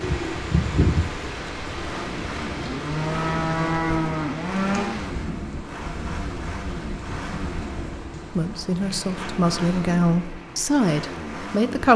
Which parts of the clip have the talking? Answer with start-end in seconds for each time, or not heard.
8.3-11.9.